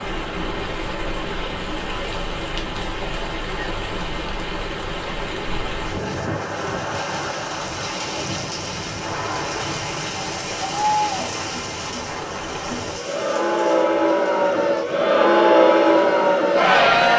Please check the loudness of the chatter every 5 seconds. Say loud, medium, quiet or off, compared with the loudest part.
quiet, quiet, medium, loud.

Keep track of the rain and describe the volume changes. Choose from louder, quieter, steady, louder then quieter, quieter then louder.
quieter.